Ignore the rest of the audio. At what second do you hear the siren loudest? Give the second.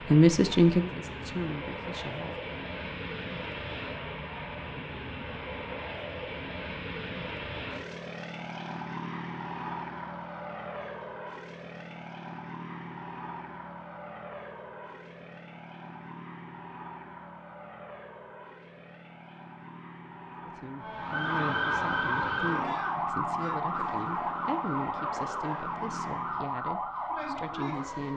22 s.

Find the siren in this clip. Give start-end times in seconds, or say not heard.
20.8-28.1.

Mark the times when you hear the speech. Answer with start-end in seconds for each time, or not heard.
0.1-2.5, 20.4-28.1.